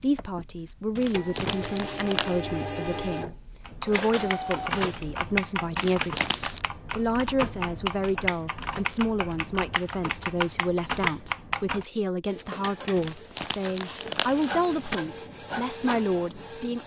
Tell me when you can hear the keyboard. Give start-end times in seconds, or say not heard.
3.6-11.8.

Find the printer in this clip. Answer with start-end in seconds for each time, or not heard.
0.0-5.2, 12.2-16.8.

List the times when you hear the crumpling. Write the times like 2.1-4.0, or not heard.
0.9-2.4, 5.8-6.7, 12.9-15.0.